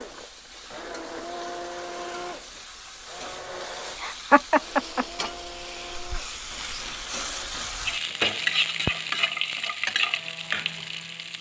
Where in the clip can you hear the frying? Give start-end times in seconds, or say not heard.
0.0-11.3.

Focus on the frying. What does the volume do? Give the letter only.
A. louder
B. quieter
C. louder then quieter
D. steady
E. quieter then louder
A.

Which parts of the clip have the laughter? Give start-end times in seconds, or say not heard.
4.0-5.3.